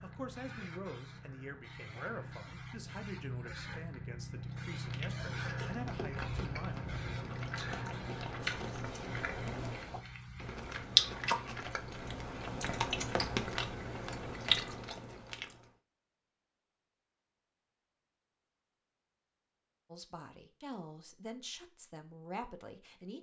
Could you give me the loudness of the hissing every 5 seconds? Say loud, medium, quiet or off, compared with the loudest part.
loud, loud, medium, off, off.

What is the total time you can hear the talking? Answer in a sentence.
The talking can be heard for 10 seconds in total.